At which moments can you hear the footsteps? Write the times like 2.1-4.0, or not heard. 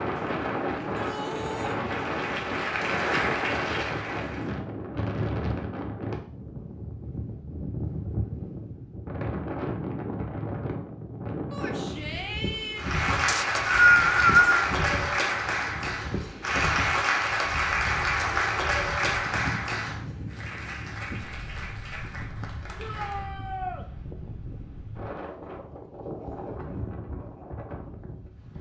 not heard.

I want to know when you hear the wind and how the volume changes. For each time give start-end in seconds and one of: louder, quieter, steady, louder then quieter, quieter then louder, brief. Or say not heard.
0.0-28.5 quieter.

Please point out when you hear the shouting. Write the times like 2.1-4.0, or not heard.
0.8-1.8, 11.5-12.9, 22.8-23.9.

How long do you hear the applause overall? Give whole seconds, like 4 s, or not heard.
15 s.